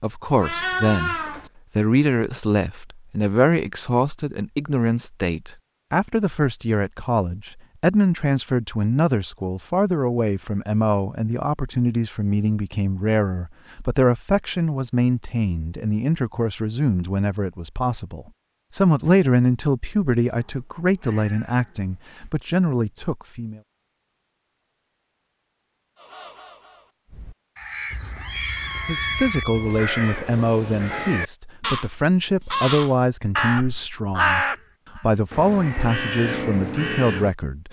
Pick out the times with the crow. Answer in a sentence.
You can hear the crow from 26.0 to 37.6 s.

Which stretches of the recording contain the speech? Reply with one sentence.
You can hear the speech from 0.0 to 23.6 s and from 28.9 to 37.6 s.